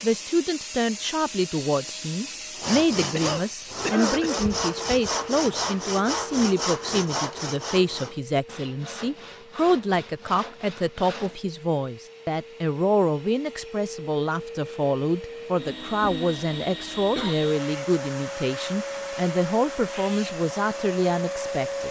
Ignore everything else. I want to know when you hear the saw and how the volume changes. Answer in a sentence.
The saw can be heard from 2.5 to 11.4 s, getting quieter.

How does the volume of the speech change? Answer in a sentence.
The loudness of the speech stays about the same.